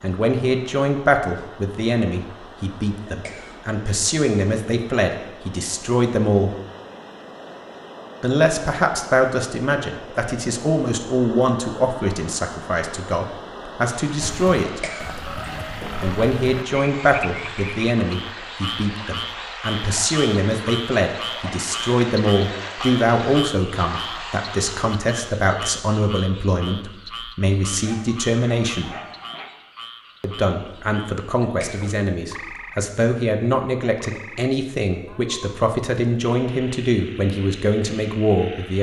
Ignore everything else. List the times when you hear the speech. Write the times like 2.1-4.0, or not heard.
0.0-6.5, 8.2-14.8, 16.0-28.9, 30.2-38.7.